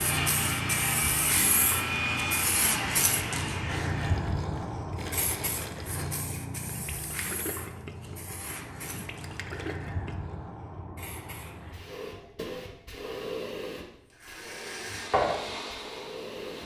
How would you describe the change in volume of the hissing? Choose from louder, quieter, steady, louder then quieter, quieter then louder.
quieter then louder.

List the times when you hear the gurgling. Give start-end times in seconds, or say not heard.
4.0-10.3.